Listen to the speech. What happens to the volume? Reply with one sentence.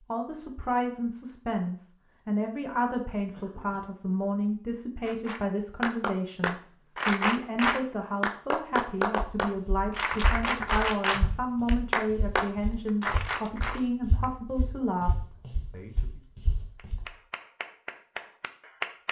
The loudness of the speech stays about the same.